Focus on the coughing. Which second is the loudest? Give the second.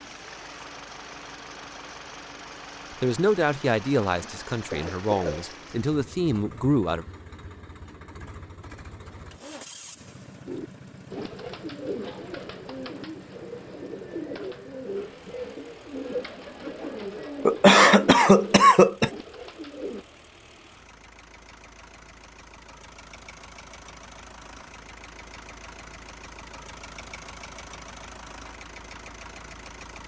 18 s.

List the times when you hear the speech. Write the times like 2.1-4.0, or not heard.
3.0-7.0.